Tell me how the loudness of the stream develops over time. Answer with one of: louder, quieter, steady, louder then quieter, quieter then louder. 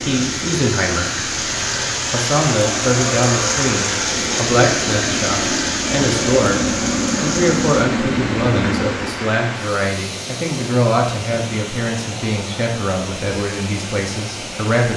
quieter.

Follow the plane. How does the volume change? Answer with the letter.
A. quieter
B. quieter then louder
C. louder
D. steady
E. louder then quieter
C.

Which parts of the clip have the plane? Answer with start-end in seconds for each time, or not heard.
0.0-9.2.